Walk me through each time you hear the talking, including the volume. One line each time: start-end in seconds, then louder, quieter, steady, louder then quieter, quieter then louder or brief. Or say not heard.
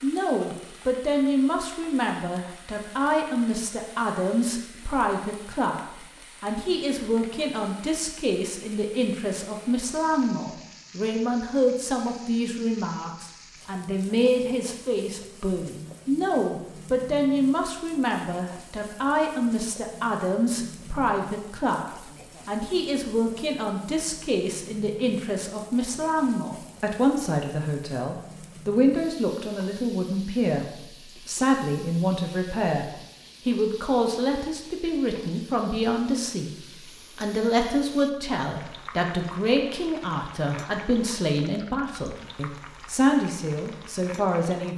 0.0-36.5 steady
37.1-44.7 quieter then louder.